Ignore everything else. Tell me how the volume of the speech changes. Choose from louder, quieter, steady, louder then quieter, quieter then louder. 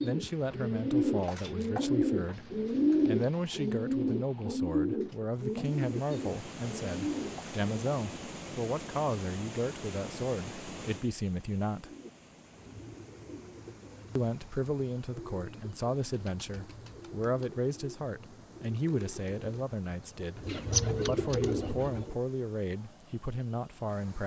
steady.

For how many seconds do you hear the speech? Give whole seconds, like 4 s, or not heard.
22 s.